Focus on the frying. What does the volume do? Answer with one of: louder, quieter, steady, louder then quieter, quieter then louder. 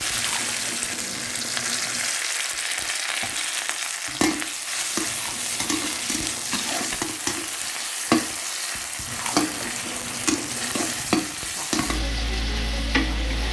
steady.